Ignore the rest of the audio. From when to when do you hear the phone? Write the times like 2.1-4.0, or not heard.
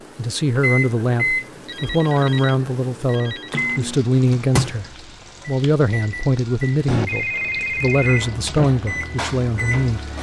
1.1-3.5, 6.8-8.7.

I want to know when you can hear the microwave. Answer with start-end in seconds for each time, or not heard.
0.0-10.1.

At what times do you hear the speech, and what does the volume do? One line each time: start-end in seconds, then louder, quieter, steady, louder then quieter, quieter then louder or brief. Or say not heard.
0.1-10.0 steady.